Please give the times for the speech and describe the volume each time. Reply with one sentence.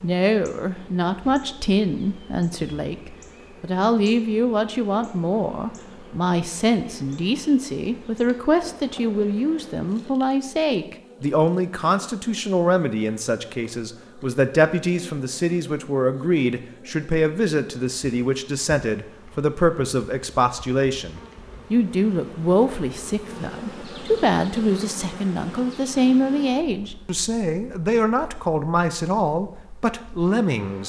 The speech can be heard from 0.0 to 30.8 s, at a steady volume.